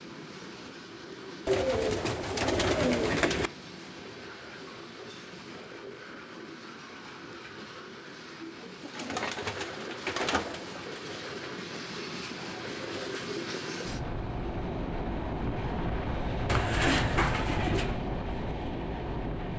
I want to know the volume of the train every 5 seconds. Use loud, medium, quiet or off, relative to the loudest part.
medium, medium, loud, loud.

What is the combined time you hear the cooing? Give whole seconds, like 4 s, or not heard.
6 s.